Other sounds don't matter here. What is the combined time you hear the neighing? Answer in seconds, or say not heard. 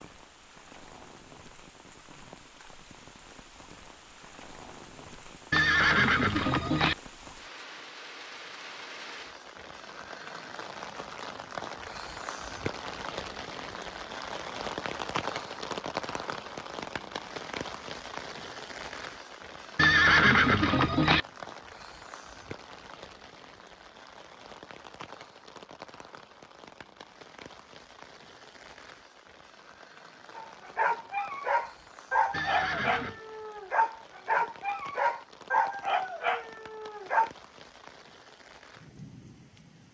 4 s.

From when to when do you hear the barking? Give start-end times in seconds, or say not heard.
30.4-37.3.